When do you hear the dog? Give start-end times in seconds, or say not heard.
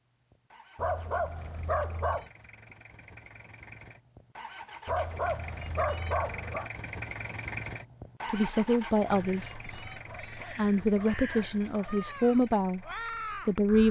0.8-2.3, 4.8-6.7, 10.1-12.1.